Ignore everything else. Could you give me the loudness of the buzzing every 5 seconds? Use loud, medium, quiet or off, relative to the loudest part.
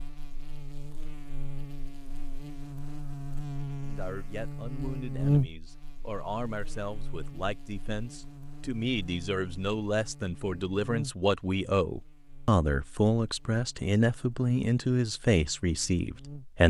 medium, loud, medium, quiet.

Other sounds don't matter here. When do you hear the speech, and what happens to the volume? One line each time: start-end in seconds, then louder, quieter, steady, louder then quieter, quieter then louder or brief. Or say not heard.
3.8-16.6 louder.